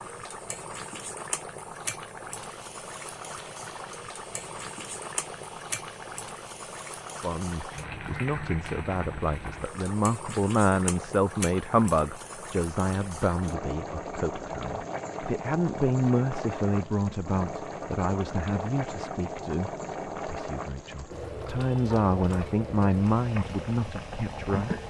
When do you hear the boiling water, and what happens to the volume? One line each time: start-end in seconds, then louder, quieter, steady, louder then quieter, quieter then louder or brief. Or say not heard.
0.0-24.8 steady.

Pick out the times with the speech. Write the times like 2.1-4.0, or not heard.
7.2-24.8.